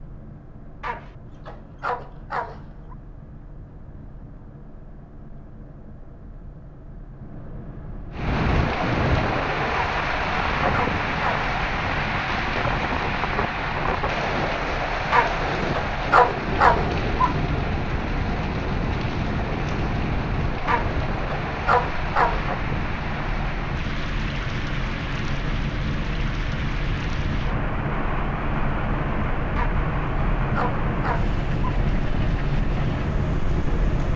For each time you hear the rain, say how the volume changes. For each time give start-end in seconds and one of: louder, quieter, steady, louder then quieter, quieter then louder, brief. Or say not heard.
8.1-34.1 quieter.